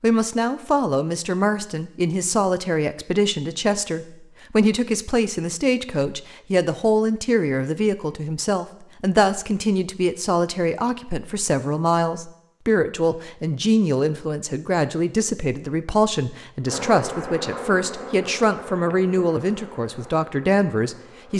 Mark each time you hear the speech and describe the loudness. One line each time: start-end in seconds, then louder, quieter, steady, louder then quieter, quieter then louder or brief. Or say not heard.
0.0-21.3 steady.